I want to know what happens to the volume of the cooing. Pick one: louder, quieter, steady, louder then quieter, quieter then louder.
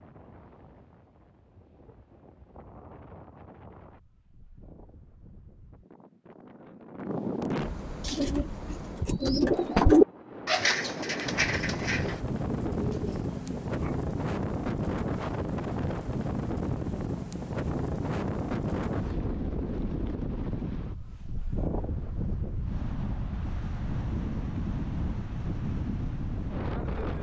louder then quieter.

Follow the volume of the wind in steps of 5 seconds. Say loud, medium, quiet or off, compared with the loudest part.
quiet, medium, loud, loud, loud, loud.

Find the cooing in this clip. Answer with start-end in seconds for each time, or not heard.
8.0-13.9.